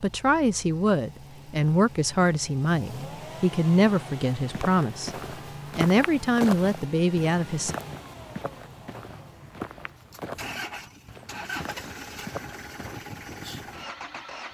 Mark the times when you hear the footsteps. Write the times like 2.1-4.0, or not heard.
4.3-13.0.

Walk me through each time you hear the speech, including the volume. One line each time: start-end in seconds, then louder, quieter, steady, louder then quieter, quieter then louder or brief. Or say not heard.
0.0-7.8 steady.